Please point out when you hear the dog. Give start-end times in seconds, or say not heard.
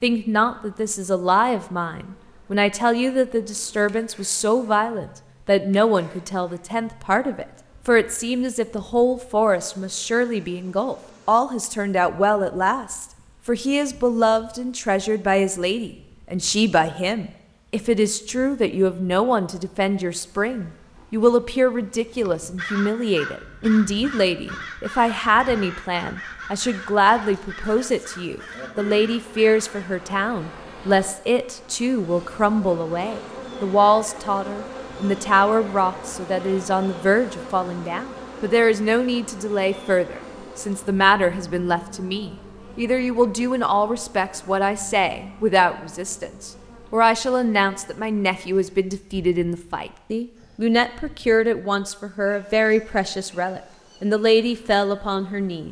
not heard.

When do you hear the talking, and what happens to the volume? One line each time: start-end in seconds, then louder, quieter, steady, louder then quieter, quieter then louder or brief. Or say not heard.
0.0-55.6 steady.